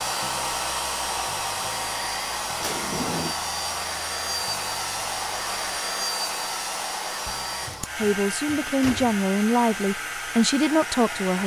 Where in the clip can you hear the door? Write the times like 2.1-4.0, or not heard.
2.6-3.4, 7.7-9.2.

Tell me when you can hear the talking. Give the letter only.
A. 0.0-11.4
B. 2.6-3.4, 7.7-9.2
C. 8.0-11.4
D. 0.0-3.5
C.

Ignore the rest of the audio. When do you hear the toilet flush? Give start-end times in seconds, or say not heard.
not heard.